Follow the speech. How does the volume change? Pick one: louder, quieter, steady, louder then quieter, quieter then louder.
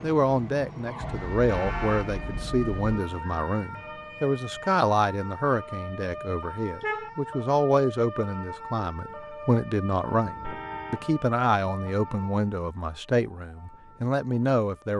steady.